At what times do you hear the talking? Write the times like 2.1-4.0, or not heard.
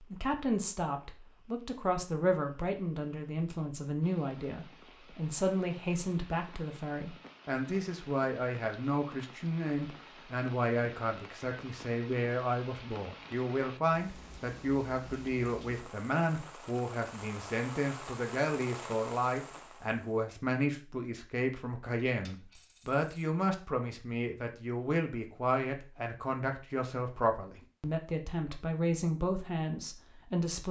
0.0-30.6.